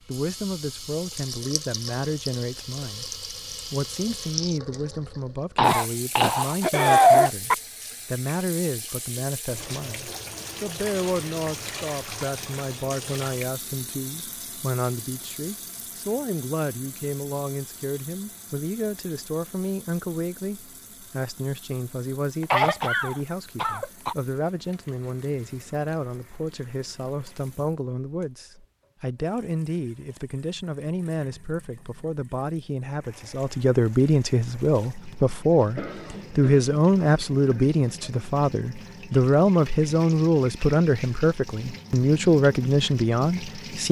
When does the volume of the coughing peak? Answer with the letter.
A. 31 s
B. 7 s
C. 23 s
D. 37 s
B.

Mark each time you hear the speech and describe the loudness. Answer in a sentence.
The speech can be heard from 0.1 to 43.8 s, getting louder.